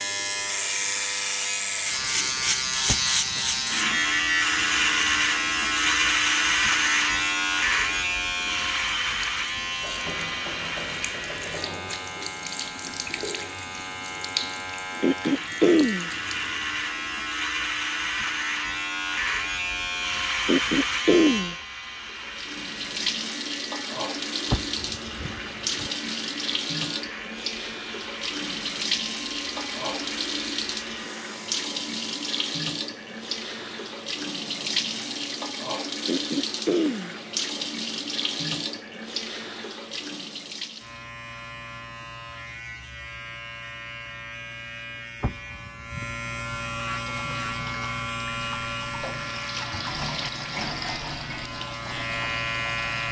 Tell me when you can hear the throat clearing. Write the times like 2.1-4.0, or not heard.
15.0-16.1, 20.4-21.6, 36.0-37.1.